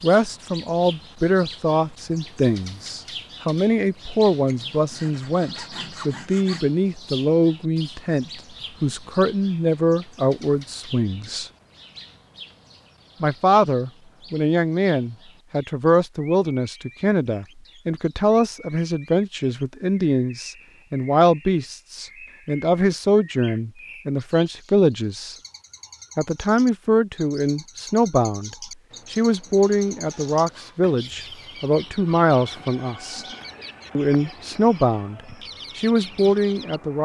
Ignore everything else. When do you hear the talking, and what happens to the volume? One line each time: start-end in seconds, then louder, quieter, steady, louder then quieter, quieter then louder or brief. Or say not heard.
0.0-11.5 steady
13.2-25.4 steady
26.1-33.2 steady
34.0-36.9 brief.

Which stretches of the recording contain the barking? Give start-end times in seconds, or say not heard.
not heard.